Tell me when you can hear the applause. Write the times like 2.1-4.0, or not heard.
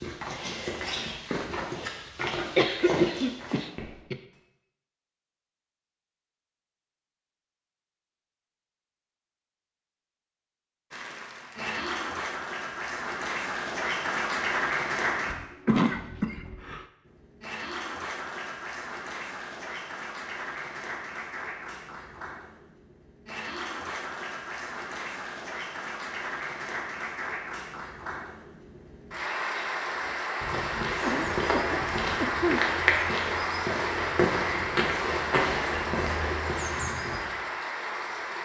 10.9-15.3, 17.1-38.3.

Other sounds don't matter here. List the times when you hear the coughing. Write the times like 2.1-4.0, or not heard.
2.5-4.2, 15.3-16.9, 31.0-32.6.